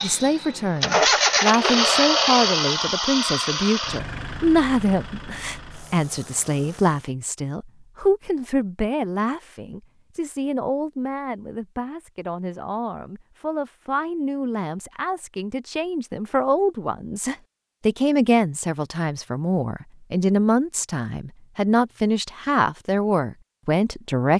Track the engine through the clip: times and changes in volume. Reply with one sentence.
The engine can be heard from 0.0 to 7.2 s, getting quieter.